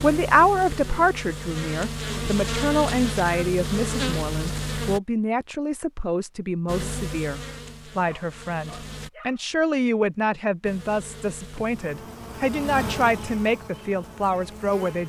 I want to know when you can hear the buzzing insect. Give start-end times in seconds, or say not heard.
0.0-5.0, 6.7-9.1, 10.6-15.0.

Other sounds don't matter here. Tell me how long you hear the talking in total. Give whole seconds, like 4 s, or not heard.
15 s.